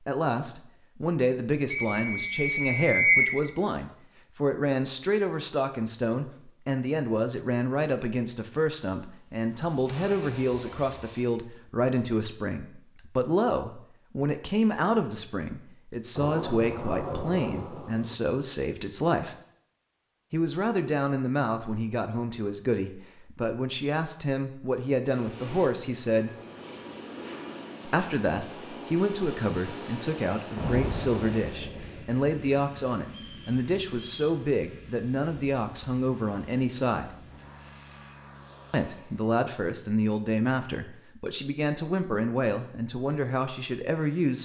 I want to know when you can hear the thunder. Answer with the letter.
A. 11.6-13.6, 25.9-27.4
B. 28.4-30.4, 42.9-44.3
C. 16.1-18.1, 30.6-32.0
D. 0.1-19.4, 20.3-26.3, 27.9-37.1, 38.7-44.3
C.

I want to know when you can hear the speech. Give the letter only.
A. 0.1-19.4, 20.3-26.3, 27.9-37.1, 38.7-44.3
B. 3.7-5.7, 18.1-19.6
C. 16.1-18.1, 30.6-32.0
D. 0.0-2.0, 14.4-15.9
A.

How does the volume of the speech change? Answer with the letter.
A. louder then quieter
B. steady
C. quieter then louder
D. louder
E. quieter
B.